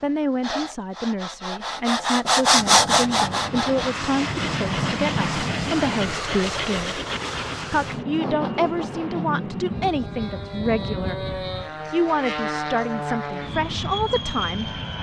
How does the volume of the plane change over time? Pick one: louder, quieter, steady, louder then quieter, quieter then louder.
steady.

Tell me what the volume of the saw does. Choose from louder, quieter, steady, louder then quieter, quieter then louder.
louder then quieter.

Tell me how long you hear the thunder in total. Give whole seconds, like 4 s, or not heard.
4 s.